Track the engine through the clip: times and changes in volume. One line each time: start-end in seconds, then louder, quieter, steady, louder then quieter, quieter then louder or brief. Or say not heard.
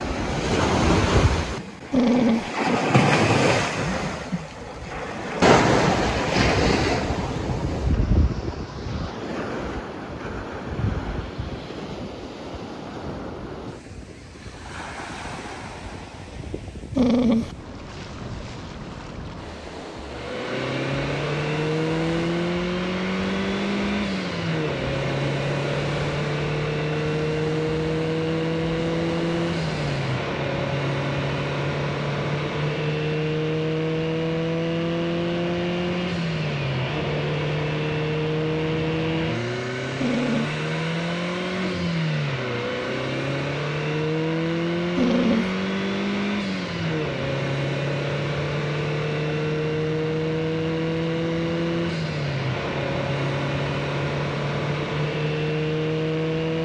20.1-56.5 steady.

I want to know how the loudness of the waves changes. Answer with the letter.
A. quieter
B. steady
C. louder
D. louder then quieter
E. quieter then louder
A.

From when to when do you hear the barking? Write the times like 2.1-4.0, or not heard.
1.9-2.5, 16.9-17.6, 40.0-40.5, 45.0-45.5.